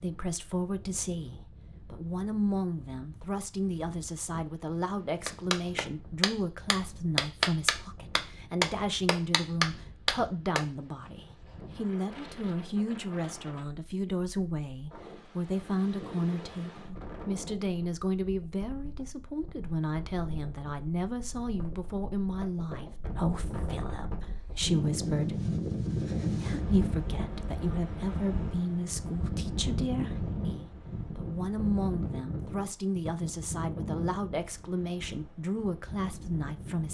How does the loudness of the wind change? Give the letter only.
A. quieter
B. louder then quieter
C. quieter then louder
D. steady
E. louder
E.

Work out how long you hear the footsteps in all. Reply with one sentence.
You can't hear the footsteps here.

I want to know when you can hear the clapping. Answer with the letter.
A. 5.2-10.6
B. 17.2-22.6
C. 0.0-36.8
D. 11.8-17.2
A.